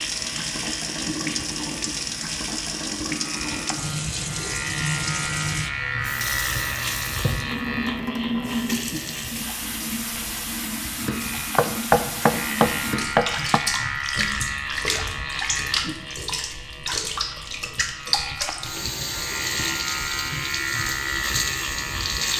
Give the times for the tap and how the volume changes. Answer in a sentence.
The tap can be heard from 0.0 to 22.3 s, at a steady volume.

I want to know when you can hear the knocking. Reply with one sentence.
The knocking can be heard from 11.6 to 13.6 s.